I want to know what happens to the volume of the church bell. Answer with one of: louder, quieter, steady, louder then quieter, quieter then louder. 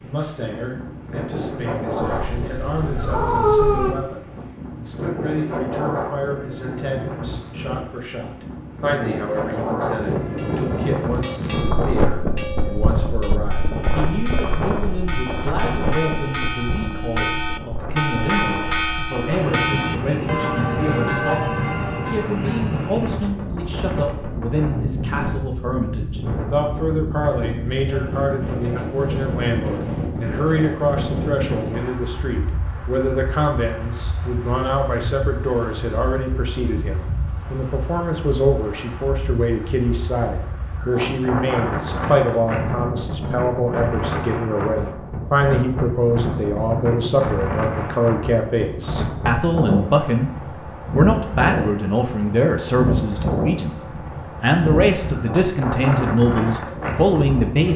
louder.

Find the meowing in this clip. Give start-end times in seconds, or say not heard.
2.0-4.0.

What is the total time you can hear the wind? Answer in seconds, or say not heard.
58 s.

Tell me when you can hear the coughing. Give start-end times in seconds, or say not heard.
not heard.